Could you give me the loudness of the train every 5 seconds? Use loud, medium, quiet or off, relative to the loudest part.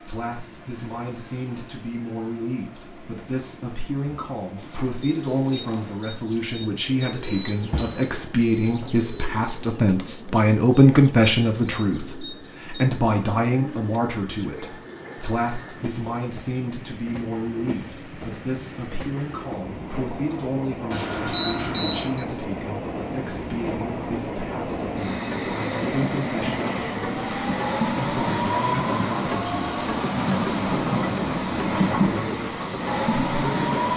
quiet, quiet, quiet, quiet, medium, loud, loud.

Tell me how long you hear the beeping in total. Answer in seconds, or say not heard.
3 s.